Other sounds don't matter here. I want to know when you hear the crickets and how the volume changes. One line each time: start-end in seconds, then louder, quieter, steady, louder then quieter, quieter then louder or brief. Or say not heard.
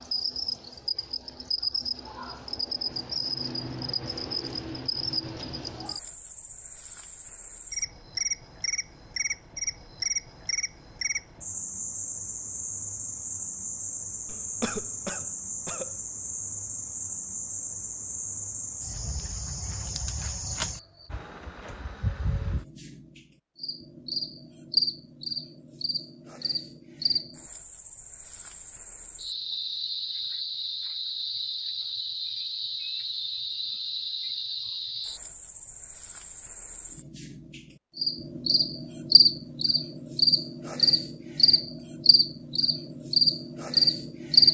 0.0-44.4 louder.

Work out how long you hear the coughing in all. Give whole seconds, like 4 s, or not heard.
2 s.